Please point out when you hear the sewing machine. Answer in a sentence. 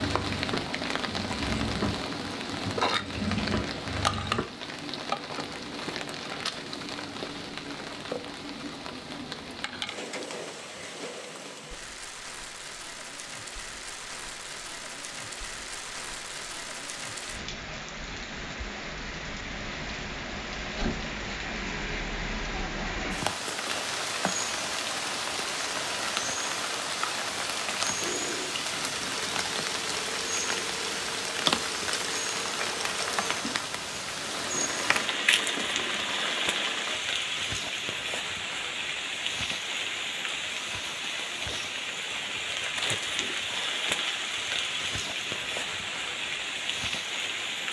You can hear the sewing machine from 0.0 to 4.5 s and from 27.9 to 37.0 s.